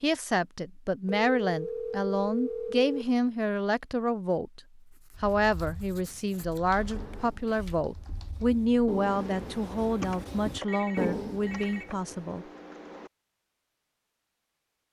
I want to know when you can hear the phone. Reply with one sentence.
The phone can be heard from 1.1 to 3.0 s, from 6.8 to 7.8 s and from 10.5 to 11.9 s.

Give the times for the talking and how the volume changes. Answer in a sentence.
You can hear the talking from 0.0 to 12.4 s, at a steady volume.